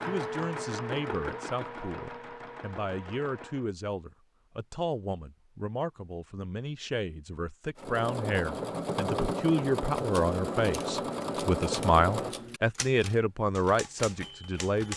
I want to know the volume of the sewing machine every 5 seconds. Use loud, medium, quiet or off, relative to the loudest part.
medium, loud, loud.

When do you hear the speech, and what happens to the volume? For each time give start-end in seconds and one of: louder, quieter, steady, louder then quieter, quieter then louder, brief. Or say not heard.
0.1-14.9 louder.